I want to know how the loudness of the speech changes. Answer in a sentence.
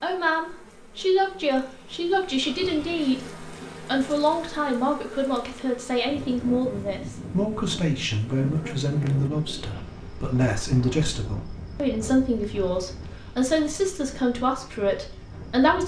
The volume of the speech stays about the same.